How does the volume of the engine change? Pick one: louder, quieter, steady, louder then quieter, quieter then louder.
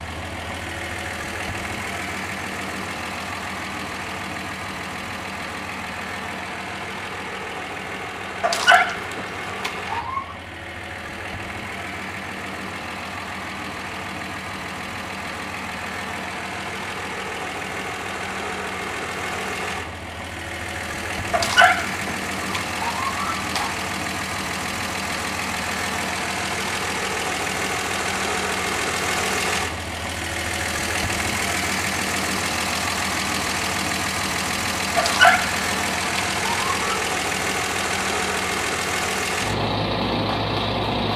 louder.